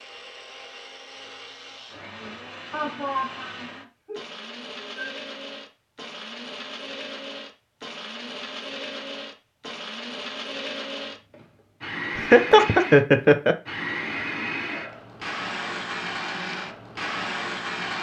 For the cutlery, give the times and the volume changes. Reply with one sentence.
You can't hear the cutlery here.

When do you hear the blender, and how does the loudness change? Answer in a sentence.
You can hear the blender from 0.0 to 17.9 s, getting louder.